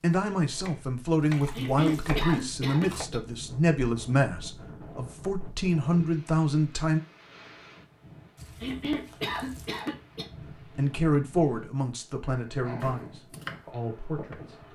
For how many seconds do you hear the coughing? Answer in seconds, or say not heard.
3 s.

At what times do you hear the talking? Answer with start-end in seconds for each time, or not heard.
0.0-7.0, 10.8-14.7.